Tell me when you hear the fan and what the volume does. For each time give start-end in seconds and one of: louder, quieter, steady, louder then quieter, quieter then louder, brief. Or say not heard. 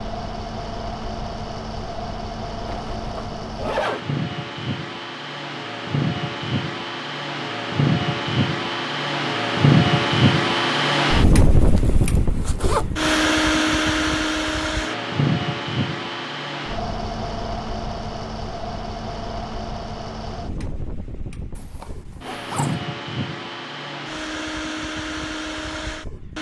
0.0-26.3 louder then quieter.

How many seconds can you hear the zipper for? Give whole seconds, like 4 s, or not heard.
4 s.